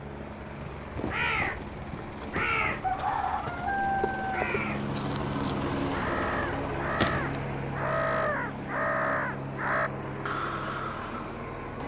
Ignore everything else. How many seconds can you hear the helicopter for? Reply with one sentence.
You can hear the helicopter for 12 seconds altogether.